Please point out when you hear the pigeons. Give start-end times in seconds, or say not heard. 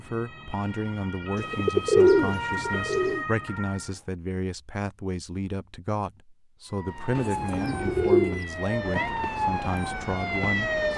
1.4-3.2, 7.2-8.4.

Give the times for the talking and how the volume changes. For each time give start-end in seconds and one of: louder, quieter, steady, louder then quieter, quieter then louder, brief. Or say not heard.
0.0-10.8 steady.